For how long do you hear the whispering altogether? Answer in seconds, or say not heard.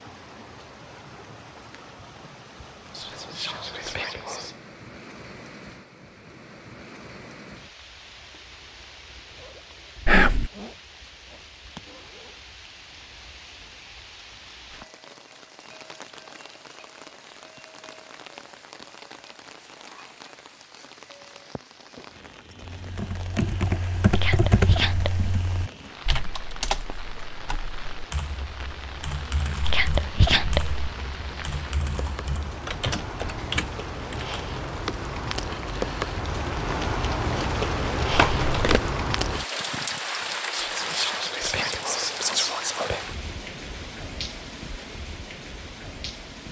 7 s.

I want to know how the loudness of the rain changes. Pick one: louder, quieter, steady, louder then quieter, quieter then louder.
louder.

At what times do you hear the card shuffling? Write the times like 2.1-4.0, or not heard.
38.1-39.0.